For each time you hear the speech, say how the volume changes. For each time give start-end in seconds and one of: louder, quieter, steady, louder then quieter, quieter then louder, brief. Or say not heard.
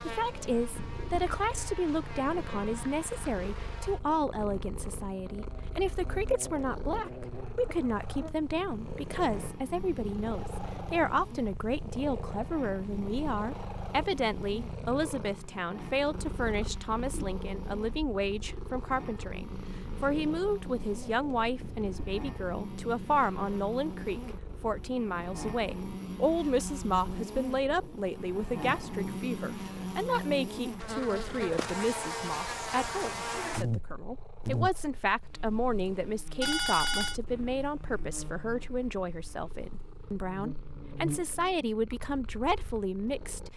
0.1-43.5 steady.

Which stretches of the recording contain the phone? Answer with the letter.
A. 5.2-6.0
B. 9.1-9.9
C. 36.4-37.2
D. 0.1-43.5
C.